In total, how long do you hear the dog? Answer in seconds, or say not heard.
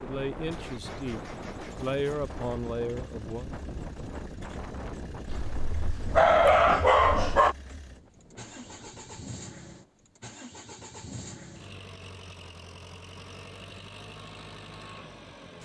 2 s.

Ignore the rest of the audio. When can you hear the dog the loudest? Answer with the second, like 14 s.
6 s.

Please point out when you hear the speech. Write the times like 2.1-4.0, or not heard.
0.0-3.5.